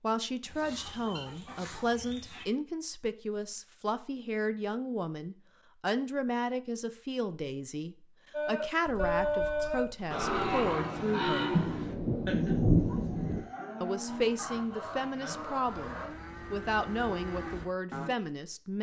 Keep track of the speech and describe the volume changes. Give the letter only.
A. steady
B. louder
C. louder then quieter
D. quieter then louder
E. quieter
A.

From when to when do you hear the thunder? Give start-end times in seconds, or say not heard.
11.5-13.4.